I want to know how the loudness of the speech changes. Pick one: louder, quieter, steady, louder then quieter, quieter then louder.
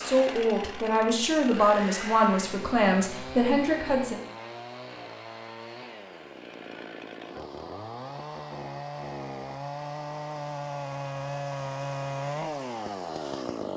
steady.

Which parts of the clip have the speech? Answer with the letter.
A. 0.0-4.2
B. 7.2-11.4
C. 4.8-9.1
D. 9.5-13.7
A.